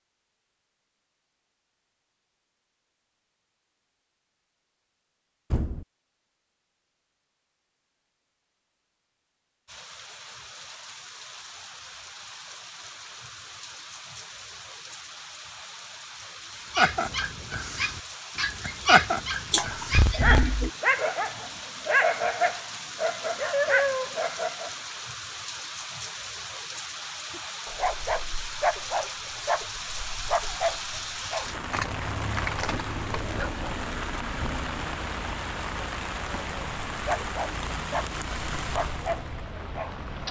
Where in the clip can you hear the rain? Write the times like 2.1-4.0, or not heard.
9.7-40.2.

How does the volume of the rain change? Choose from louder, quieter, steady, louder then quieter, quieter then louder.
louder.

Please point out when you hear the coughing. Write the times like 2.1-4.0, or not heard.
19.5-20.7.